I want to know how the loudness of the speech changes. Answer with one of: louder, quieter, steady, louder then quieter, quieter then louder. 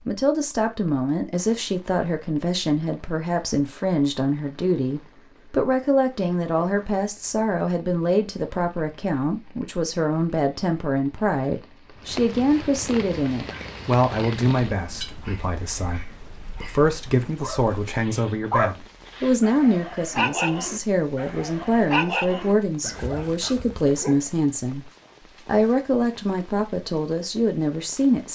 steady.